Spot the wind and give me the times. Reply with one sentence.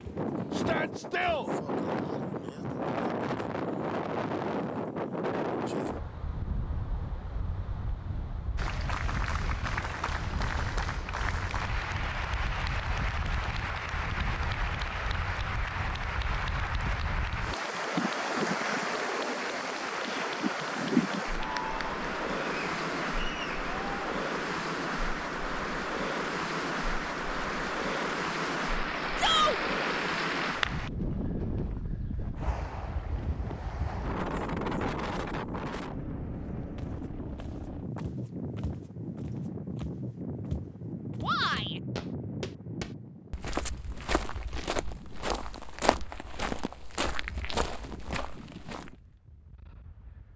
The wind can be heard from 0.0 to 50.3 s.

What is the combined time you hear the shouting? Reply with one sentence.
You can hear the shouting for 2 seconds altogether.